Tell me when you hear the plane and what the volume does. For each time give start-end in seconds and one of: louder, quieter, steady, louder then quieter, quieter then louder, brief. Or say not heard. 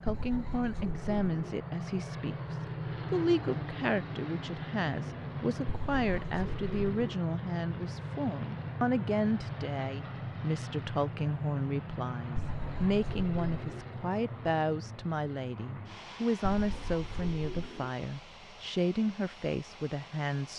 0.0-20.5 quieter.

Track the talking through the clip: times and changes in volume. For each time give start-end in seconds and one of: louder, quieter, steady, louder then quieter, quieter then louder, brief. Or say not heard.
0.0-20.5 steady.